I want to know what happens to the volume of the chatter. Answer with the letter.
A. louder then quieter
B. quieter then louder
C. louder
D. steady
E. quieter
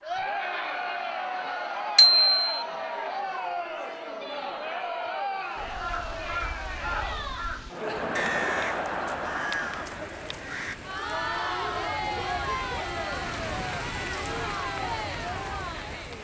D.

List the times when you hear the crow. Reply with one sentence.
You can hear the crow from 5.5 to 10.8 s.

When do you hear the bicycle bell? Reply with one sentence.
The bicycle bell can be heard from 1.9 to 2.6 s.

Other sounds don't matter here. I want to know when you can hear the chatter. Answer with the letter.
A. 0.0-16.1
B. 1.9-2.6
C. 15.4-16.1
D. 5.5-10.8
A.